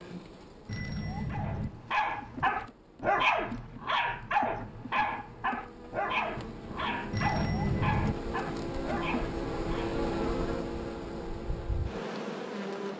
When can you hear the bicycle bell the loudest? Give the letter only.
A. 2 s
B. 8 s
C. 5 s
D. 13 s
B.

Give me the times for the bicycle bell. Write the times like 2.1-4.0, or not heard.
0.7-1.7, 7.1-8.2.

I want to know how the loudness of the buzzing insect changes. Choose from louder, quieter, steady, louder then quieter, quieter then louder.
louder.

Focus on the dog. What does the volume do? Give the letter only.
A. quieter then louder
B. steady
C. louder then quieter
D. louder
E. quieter
E.